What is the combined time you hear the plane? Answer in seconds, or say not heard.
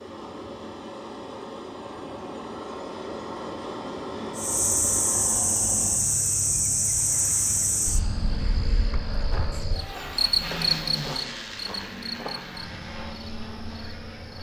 14 s.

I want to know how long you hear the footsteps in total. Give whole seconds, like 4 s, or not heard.
3 s.